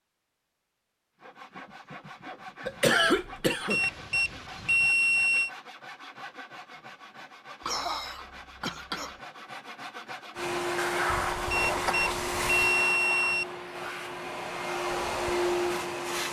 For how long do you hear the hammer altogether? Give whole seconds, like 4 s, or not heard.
not heard.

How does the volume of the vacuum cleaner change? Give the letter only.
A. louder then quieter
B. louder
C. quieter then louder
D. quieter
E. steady
C.